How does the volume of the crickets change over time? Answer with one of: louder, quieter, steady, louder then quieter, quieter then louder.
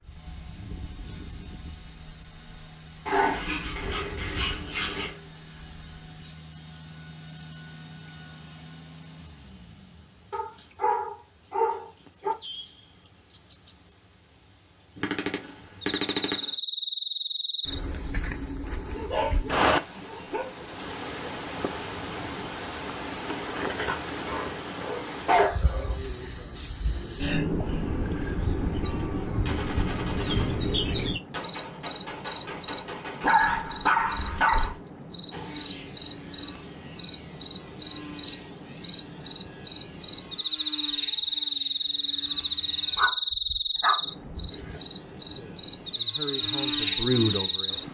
louder.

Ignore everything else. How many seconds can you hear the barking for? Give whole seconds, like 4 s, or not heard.
11 s.